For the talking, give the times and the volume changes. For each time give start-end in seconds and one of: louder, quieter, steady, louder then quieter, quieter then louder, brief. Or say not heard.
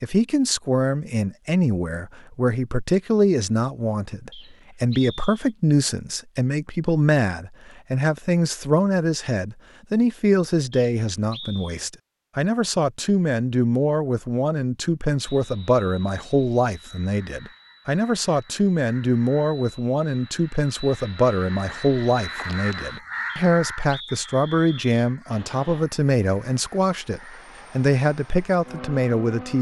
0.0-29.5 steady.